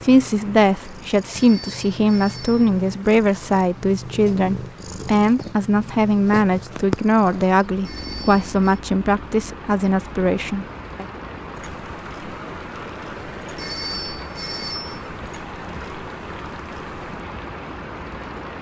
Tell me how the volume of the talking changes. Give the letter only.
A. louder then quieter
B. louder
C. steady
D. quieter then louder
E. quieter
C.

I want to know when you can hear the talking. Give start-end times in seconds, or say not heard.
0.0-11.1.